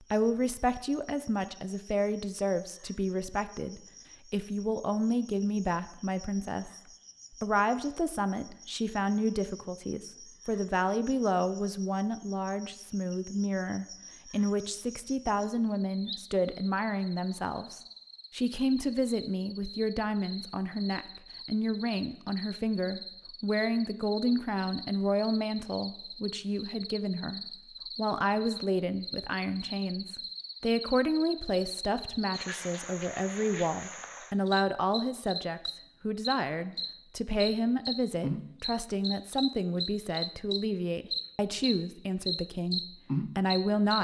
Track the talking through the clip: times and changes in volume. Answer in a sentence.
The talking can be heard from 0.0 to 43.9 s, at a steady volume.